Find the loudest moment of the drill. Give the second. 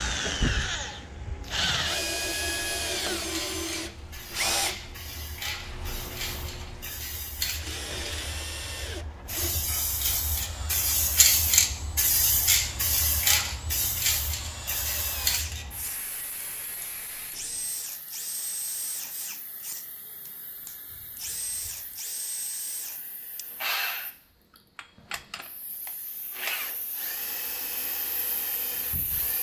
2 s.